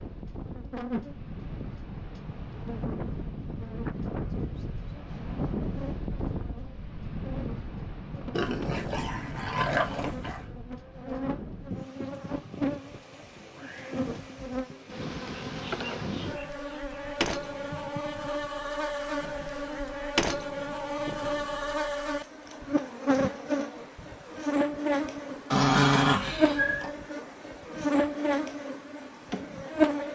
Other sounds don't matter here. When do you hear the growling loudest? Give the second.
26 s.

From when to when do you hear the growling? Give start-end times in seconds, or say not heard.
8.3-10.4, 25.5-26.9.